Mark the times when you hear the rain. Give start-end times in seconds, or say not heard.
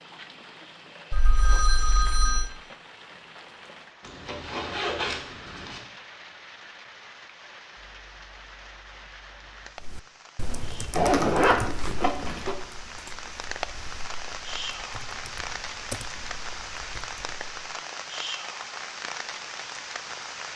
0.0-20.5.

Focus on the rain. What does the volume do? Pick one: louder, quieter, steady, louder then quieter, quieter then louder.
louder.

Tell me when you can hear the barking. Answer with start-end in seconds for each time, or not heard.
not heard.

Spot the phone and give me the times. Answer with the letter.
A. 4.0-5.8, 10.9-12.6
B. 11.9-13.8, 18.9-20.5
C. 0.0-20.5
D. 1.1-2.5
D.